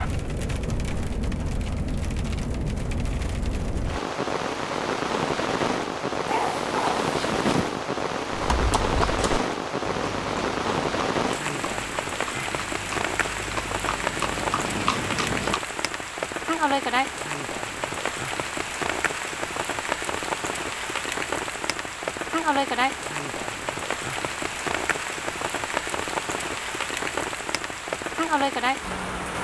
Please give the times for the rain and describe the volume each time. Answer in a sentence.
The rain can be heard from 0.0 to 29.3 s, at a steady volume.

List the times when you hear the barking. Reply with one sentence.
You can hear the barking from 6.2 to 7.8 s.